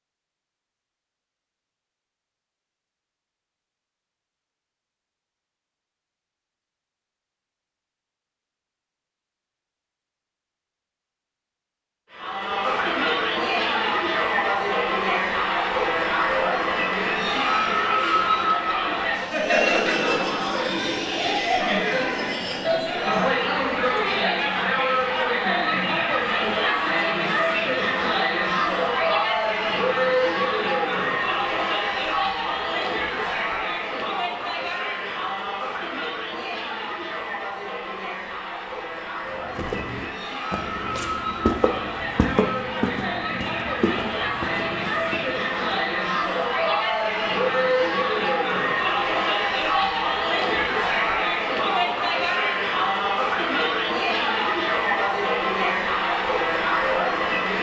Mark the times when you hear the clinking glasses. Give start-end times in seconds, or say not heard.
not heard.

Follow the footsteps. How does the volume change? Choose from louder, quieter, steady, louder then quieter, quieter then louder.
louder then quieter.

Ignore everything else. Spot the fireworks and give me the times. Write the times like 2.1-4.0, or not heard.
not heard.